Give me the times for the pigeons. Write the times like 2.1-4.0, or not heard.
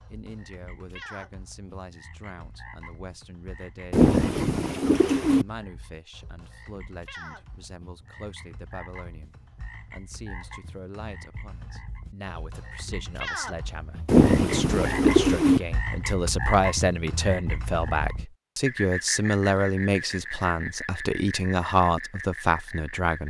3.9-5.5, 14.1-15.6.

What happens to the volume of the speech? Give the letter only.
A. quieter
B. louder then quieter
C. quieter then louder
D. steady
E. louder
E.